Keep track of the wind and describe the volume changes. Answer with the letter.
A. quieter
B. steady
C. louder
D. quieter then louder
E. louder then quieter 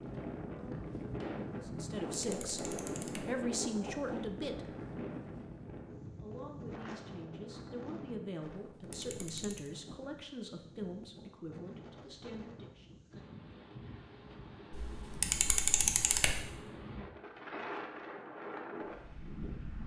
D.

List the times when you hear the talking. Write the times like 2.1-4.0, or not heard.
1.6-4.6, 6.2-13.0.